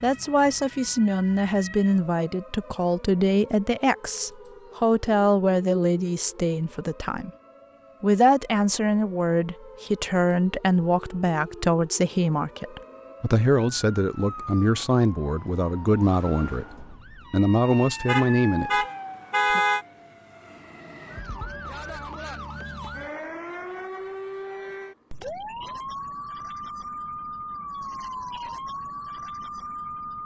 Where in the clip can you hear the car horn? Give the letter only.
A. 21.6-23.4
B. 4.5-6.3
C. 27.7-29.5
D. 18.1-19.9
D.